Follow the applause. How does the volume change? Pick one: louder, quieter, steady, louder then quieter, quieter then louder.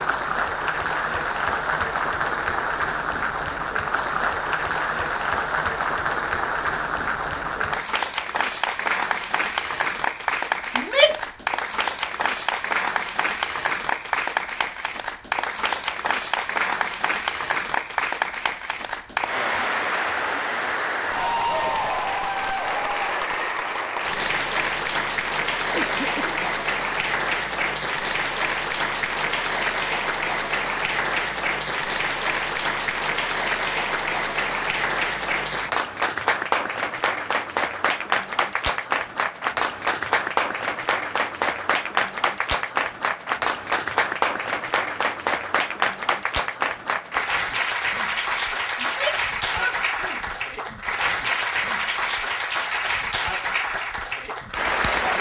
steady.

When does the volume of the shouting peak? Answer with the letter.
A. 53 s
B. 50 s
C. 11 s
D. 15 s
C.